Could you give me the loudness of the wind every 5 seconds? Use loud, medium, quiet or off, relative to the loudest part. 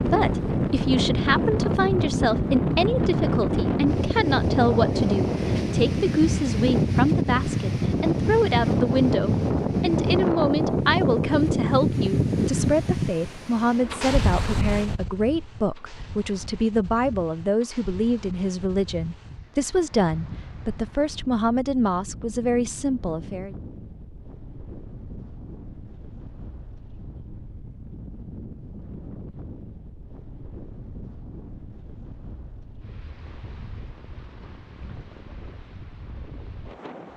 loud, loud, loud, quiet, quiet, quiet, quiet, quiet.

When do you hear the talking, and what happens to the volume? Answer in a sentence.
The talking can be heard from 0.0 to 23.6 s, at a steady volume.